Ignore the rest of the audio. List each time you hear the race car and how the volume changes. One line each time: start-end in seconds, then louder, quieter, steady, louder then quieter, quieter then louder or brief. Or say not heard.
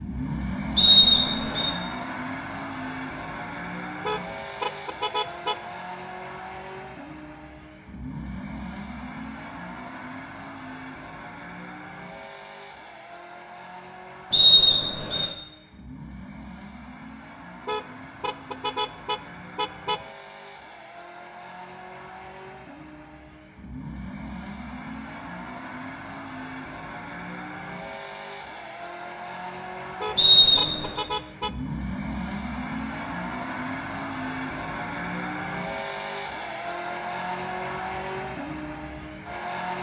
0.0-39.7 quieter then louder.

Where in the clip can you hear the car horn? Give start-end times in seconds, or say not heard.
4.0-5.8, 17.6-20.1, 30.0-31.5.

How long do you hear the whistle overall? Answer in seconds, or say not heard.
3 s.